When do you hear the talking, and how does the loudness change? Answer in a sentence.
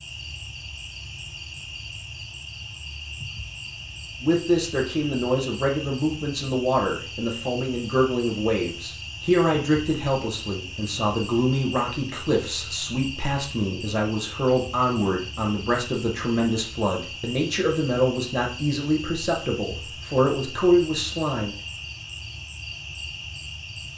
You can hear the talking from 4.2 to 21.5 s, at a steady volume.